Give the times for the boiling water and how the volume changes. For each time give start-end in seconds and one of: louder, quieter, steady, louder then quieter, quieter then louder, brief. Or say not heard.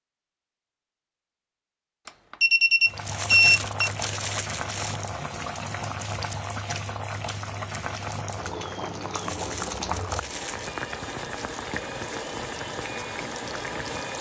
2.9-14.1 steady.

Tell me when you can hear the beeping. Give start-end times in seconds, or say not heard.
2.0-3.9.